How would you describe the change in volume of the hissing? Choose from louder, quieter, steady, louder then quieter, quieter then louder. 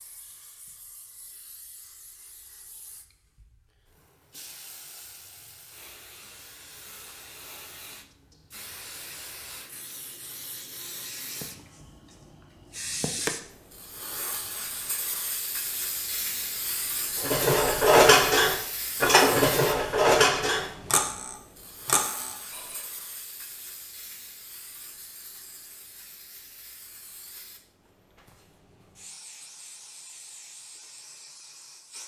louder then quieter.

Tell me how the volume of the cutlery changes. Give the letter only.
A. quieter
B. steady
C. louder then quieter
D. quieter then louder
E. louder
A.